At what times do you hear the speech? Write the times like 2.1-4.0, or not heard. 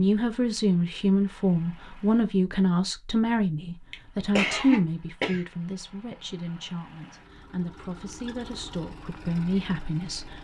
0.0-10.3.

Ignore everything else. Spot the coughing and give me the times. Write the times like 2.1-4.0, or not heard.
3.9-5.4.